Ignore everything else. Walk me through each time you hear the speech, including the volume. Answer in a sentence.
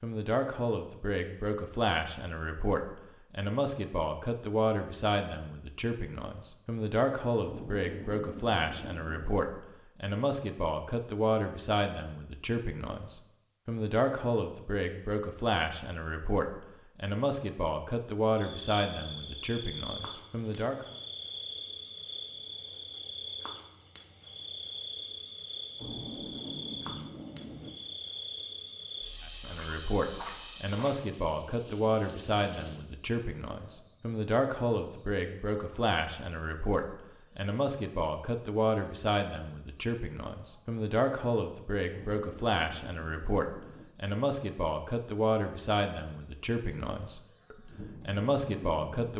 The speech can be heard from 0.0 to 20.9 s, at a steady volume; and from 29.2 to 49.1 s, at a steady volume.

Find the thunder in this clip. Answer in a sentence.
The thunder can be heard from 7.4 to 9.3 s, from 25.8 to 27.7 s and from 41.9 to 43.9 s.